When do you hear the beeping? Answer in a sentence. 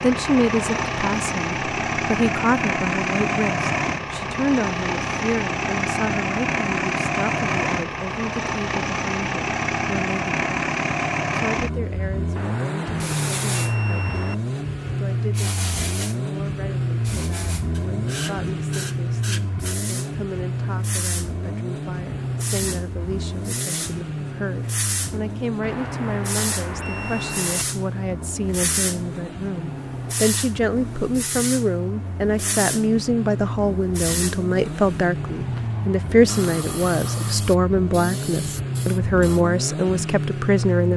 You can hear the beeping from 12.3 to 14.3 s and from 25.6 to 27.6 s.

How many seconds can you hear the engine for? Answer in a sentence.
You can hear the engine for 41 seconds altogether.